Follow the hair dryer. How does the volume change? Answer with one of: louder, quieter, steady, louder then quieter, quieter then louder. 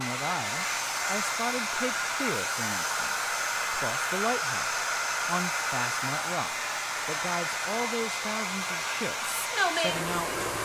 steady.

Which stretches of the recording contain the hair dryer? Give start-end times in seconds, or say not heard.
0.0-10.6.